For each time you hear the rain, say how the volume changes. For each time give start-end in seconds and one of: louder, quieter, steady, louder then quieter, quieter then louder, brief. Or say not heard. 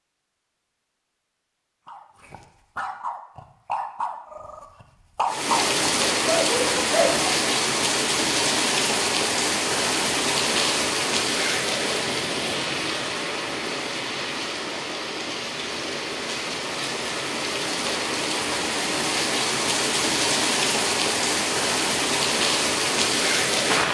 5.2-23.9 quieter then louder.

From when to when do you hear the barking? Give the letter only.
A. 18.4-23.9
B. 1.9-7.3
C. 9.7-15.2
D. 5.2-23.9
B.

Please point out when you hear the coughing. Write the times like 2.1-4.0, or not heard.
not heard.